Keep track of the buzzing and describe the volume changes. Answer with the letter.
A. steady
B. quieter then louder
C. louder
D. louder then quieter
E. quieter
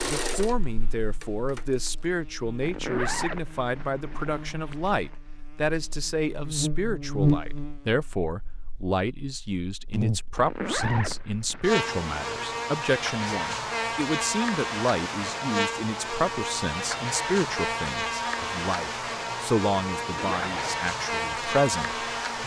C.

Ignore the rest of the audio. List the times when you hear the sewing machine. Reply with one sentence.
You can hear the sewing machine from 0.0 to 1.9 s.